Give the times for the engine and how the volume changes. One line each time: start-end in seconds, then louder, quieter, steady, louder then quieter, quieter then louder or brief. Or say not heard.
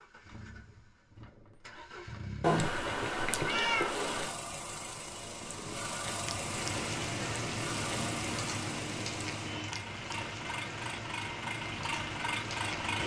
0.0-13.0 louder.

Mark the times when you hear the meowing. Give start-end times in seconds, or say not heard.
2.4-4.3.